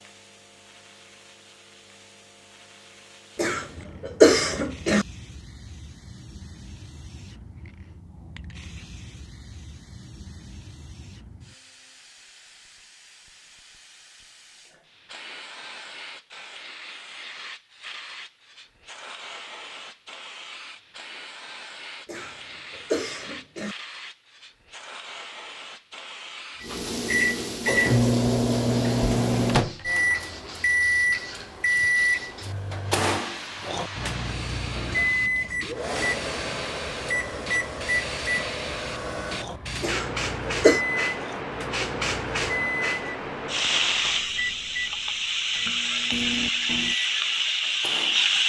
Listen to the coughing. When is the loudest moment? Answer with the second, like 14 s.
4 s.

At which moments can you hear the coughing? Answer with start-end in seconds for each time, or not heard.
3.4-5.0, 22.1-23.8, 39.8-40.8.